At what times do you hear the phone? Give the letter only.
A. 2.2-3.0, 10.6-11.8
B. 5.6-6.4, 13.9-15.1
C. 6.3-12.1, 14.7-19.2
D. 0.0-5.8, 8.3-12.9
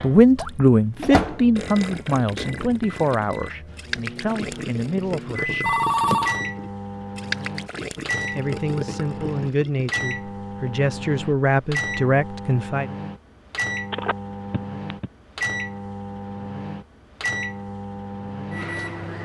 B.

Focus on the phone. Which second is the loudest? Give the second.
6 s.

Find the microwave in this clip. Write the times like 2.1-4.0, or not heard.
0.0-19.2.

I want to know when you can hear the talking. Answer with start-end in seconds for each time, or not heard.
0.0-5.8, 8.3-12.9.